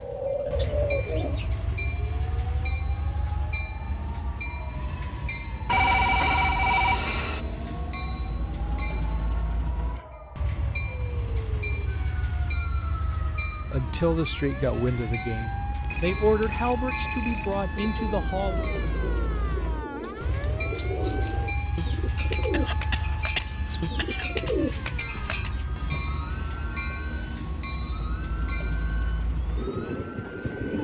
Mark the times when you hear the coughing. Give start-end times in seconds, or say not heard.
22.3-24.5.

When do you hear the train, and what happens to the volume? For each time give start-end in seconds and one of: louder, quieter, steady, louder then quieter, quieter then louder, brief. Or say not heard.
0.1-30.7 steady.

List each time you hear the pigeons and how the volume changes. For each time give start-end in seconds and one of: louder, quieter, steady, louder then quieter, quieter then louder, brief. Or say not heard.
0.0-1.6 brief
17.8-25.6 louder.